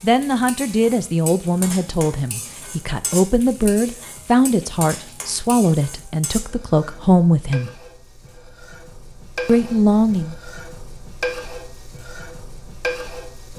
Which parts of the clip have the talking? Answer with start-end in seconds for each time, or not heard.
0.0-7.7, 9.4-10.3.